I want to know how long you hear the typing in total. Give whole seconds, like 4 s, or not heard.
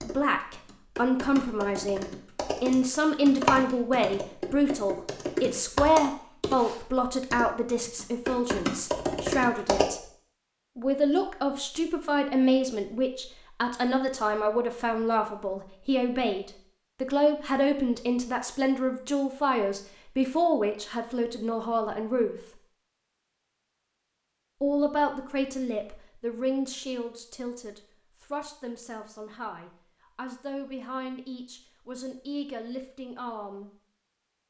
10 s.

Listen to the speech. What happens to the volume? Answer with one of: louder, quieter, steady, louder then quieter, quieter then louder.
quieter.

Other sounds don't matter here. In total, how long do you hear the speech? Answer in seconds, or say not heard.
31 s.